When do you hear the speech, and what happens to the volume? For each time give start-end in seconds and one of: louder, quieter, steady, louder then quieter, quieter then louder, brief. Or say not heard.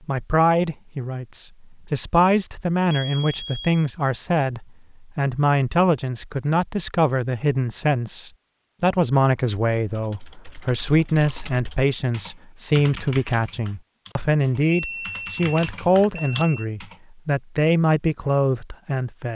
0.1-19.3 steady.